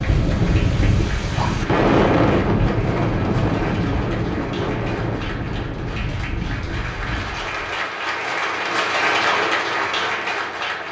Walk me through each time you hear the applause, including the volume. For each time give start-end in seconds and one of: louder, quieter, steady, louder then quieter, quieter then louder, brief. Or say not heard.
0.0-10.8 louder.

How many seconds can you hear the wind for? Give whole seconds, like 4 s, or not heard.
8 s.